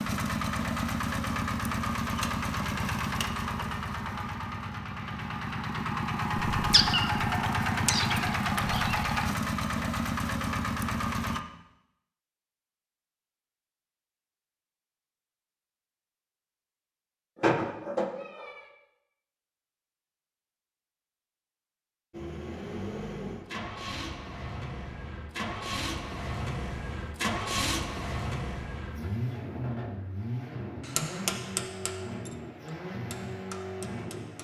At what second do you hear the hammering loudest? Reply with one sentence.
The loudest moment of the hammering is at 31 seconds.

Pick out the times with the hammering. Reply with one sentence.
You can hear the hammering from 30.8 to 34.3 s.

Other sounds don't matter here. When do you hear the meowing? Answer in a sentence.
You can hear the meowing from 6.4 to 9.1 s and from 17.4 to 18.6 s.